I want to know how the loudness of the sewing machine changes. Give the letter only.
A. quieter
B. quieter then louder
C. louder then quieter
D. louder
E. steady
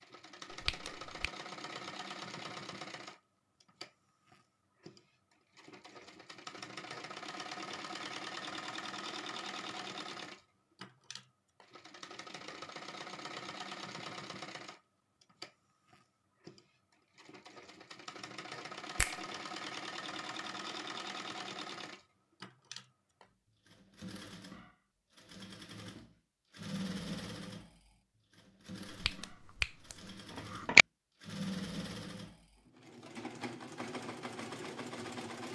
E.